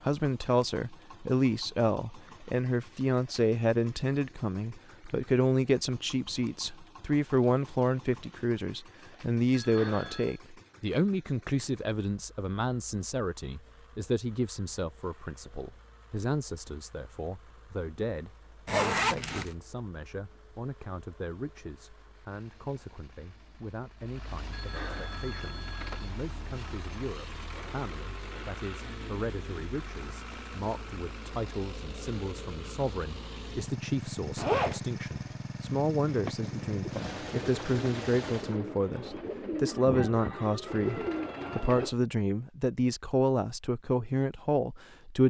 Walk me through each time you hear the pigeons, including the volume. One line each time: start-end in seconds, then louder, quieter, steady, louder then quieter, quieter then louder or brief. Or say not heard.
36.0-42.0 louder.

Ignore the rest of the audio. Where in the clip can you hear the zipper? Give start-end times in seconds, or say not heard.
18.6-19.5, 34.4-34.8.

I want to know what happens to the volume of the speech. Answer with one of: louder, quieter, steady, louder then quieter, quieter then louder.
quieter then louder.